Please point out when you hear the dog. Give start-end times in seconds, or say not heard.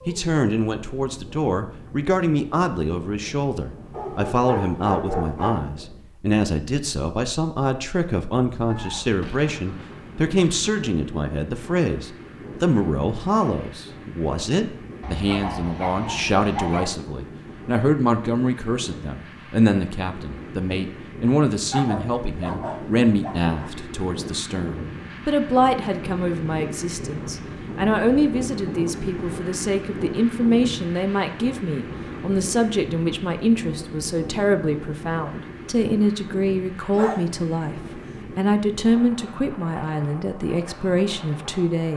3.9-5.7, 15.0-16.9, 21.7-23.7, 37.0-38.2.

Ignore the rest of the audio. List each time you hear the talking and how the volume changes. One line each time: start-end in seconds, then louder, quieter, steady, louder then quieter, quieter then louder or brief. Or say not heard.
0.1-41.9 steady.